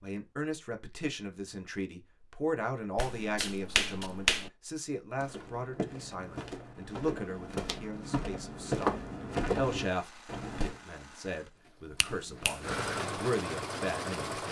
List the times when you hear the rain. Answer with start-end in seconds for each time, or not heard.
not heard.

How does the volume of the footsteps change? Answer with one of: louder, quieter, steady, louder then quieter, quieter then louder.
louder.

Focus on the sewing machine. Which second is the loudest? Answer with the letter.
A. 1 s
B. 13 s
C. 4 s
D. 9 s
B.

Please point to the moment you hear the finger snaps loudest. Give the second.
4 s.